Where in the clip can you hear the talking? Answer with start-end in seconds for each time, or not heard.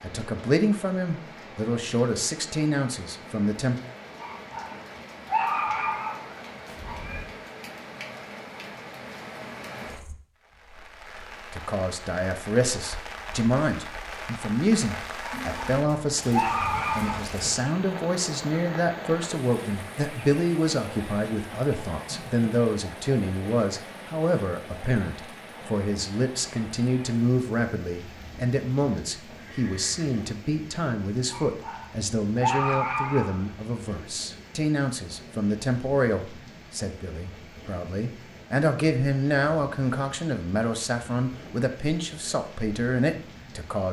0.0-3.8, 11.5-43.8.